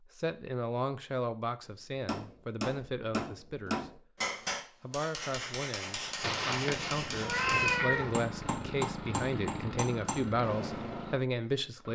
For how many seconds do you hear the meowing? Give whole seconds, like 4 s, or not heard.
2 s.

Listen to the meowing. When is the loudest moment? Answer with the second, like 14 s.
8 s.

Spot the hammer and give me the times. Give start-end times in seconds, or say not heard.
2.0-11.2.